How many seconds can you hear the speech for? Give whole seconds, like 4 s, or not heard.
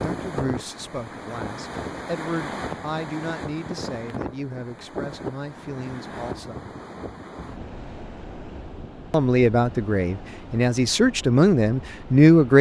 10 s.